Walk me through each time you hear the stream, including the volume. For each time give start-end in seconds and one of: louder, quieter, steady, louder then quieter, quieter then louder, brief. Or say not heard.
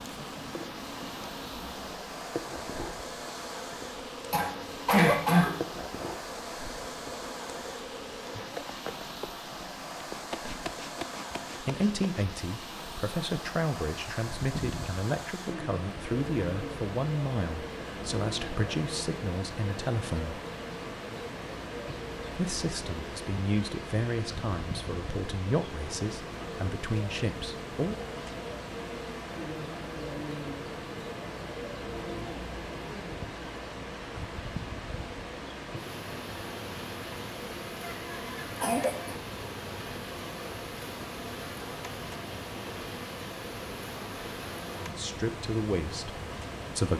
0.0-46.9 steady.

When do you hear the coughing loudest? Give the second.
5 s.